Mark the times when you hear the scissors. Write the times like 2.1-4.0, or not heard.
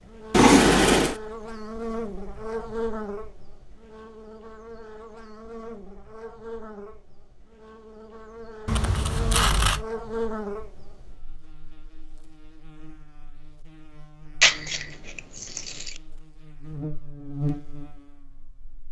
0.3-1.1, 8.7-9.8, 14.4-15.9.